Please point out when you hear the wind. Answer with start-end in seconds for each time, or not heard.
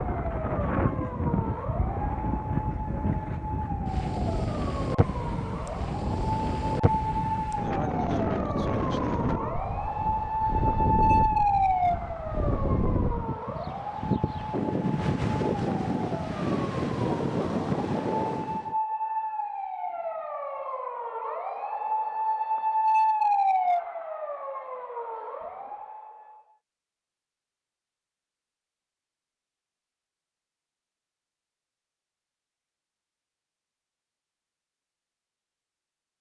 0.0-18.8.